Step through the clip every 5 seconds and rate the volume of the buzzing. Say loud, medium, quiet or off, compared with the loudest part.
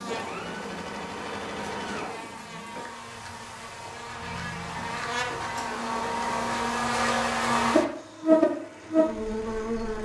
quiet, loud.